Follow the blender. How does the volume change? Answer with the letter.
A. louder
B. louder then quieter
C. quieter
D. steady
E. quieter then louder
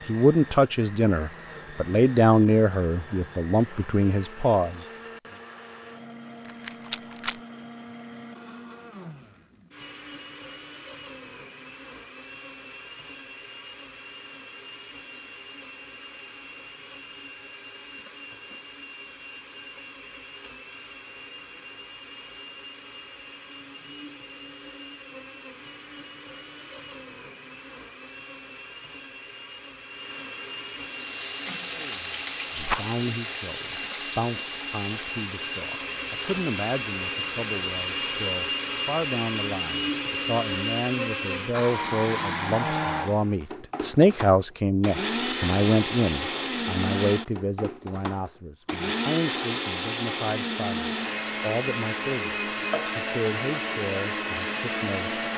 A.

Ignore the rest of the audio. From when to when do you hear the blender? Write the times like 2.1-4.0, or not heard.
0.0-55.3.